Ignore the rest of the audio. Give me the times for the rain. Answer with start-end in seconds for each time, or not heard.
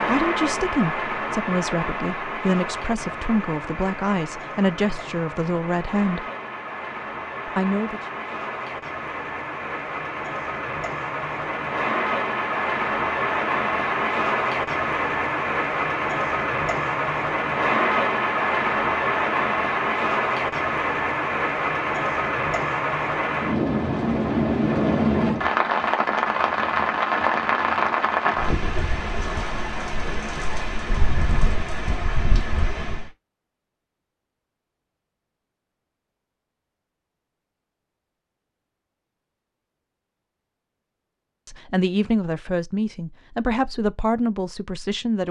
0.0-33.1.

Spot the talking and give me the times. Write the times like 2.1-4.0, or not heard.
0.1-6.2, 7.5-8.0, 41.5-45.2.